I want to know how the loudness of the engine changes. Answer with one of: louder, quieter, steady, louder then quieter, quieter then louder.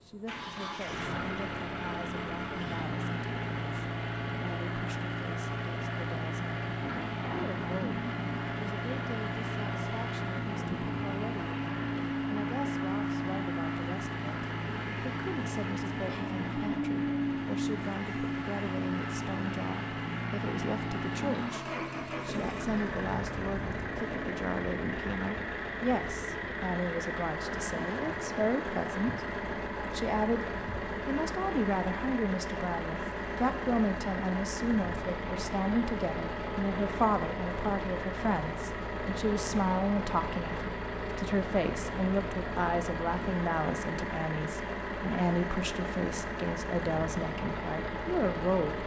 steady.